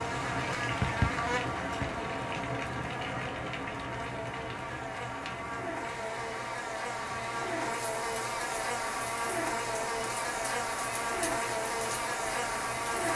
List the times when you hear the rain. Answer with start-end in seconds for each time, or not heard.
0.0-13.1.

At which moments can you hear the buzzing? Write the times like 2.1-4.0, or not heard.
0.0-13.1.